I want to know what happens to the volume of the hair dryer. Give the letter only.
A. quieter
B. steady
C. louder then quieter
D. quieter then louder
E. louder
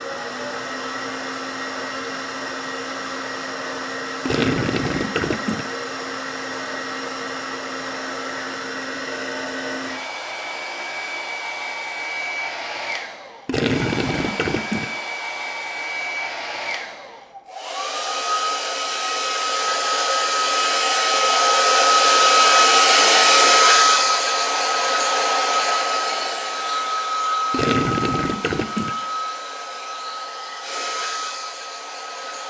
C.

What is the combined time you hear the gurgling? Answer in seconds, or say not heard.
4 s.